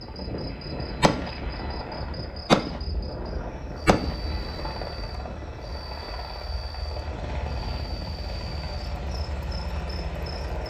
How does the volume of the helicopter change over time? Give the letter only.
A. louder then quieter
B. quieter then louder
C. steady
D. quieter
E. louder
C.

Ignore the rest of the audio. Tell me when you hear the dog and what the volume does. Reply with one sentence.
The dog can't be heard in this clip.